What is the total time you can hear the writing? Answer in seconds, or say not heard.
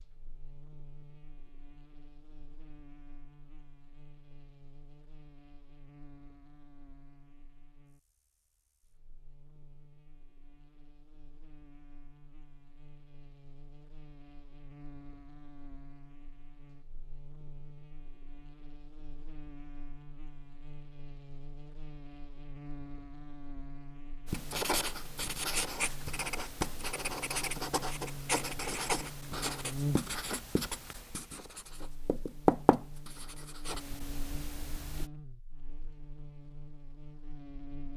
11 s.